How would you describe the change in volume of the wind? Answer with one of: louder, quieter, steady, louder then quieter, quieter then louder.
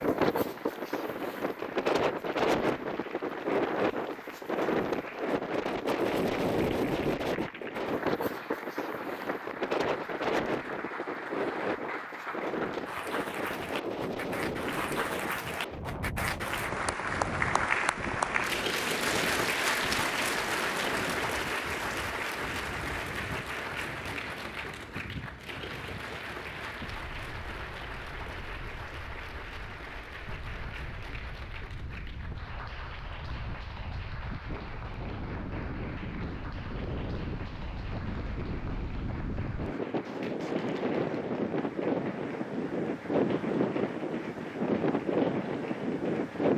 quieter then louder.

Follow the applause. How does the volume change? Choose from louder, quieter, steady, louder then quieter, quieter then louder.
louder then quieter.